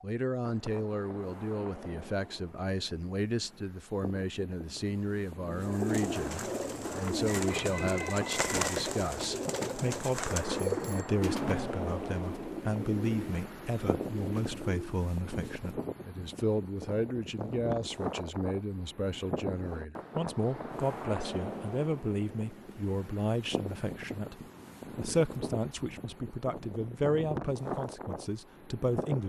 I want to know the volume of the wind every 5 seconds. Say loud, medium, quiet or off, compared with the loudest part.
medium, loud, loud, loud, loud, loud.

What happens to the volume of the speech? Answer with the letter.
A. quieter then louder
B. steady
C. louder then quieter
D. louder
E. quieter
B.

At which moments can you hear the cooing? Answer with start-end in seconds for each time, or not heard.
5.5-15.0.